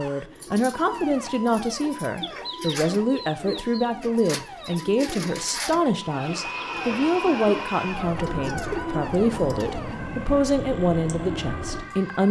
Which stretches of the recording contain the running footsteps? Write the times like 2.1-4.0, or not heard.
not heard.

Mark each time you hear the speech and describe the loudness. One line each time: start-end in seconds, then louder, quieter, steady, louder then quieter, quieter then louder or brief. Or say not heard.
0.0-12.2 steady.